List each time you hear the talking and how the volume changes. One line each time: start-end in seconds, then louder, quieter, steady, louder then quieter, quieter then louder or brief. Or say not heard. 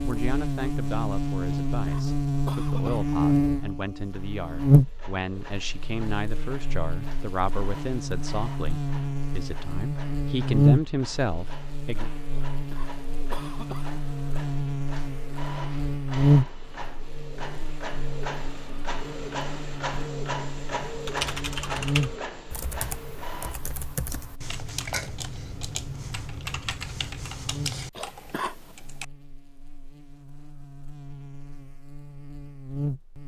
0.0-12.1 louder.